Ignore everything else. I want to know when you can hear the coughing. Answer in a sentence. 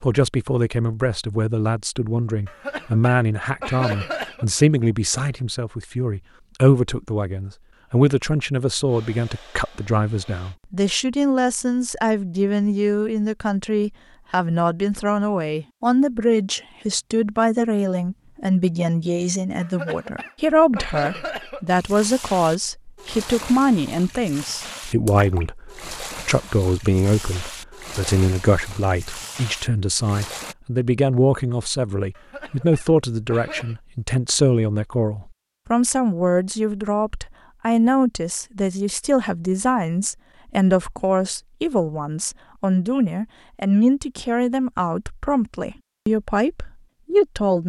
You can hear the coughing from 2.5 to 4.5 s, from 19.6 to 21.8 s and from 32.1 to 33.8 s.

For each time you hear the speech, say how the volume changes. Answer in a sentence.
The speech can be heard from 0.0 to 47.6 s, at a steady volume.